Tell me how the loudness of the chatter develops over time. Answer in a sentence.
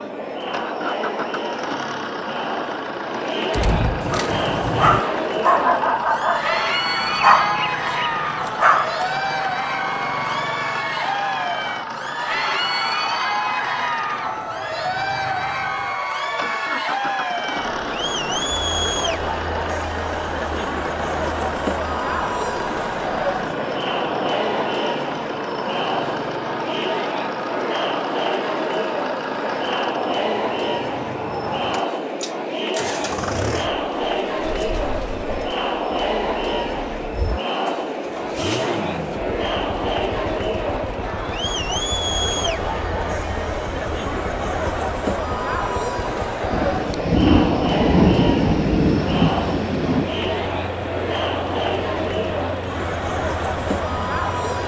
The loudness of the chatter stays about the same.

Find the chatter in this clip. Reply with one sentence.
The chatter can be heard from 0.0 to 54.6 s.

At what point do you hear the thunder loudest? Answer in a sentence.
The loudest moment of the thunder is at 48 seconds.